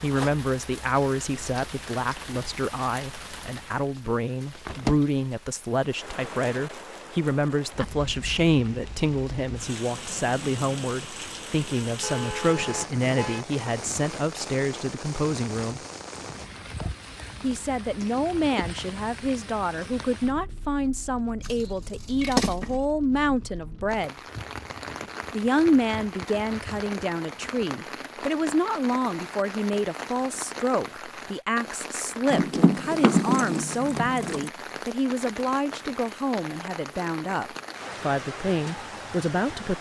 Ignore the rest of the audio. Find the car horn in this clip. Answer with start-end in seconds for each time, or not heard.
12.0-13.4.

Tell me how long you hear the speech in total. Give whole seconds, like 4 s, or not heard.
37 s.